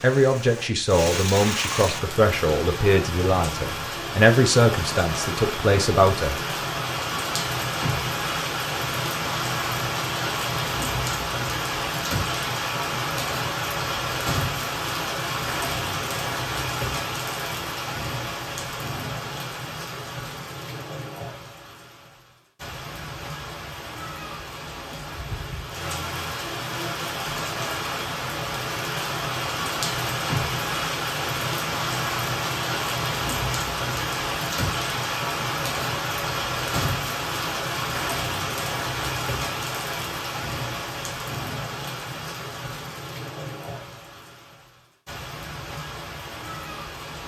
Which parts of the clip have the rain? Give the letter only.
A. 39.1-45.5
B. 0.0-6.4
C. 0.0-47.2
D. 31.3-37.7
C.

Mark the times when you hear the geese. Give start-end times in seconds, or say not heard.
not heard.